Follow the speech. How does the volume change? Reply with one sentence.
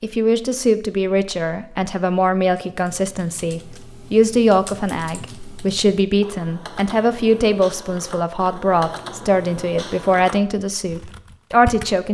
The volume of the speech stays about the same.